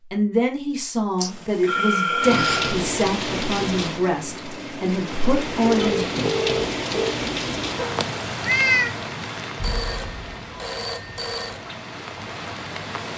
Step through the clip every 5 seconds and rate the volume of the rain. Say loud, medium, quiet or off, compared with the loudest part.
loud, loud, medium.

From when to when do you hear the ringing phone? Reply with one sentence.
The ringing phone can be heard from 1.2 to 2.8 s, from 5.6 to 7.2 s and from 9.6 to 11.6 s.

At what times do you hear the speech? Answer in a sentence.
You can hear the speech from 0.1 to 6.1 s.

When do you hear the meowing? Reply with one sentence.
The meowing can be heard from 7.8 to 8.9 s.